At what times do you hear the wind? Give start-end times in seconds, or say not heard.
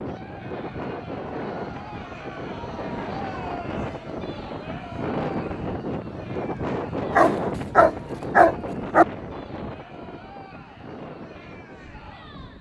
0.0-12.5.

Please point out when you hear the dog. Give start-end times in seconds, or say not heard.
7.1-9.1.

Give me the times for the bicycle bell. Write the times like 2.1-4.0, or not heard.
not heard.